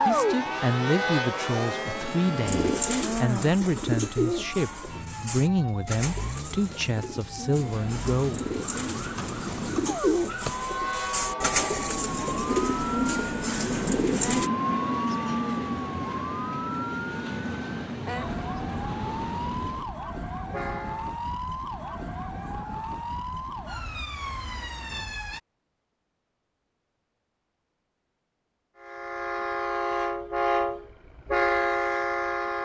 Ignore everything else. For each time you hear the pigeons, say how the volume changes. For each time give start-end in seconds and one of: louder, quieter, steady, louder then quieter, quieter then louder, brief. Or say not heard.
2.5-14.5 quieter then louder.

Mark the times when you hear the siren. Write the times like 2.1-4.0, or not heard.
0.0-25.4.